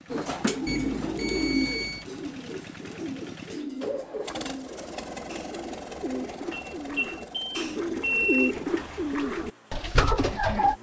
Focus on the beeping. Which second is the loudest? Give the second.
8 s.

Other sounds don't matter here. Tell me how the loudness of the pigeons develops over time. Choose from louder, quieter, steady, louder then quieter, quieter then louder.
quieter then louder.